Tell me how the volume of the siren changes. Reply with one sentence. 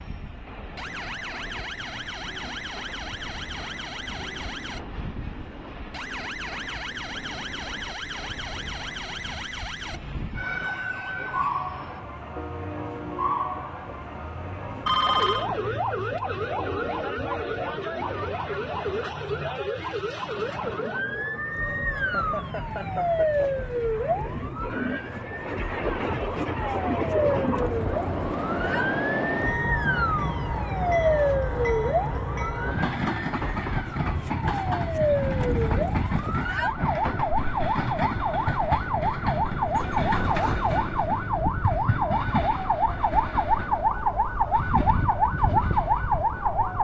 The loudness of the siren goes up.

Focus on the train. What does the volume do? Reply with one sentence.
The loudness of the train goes up.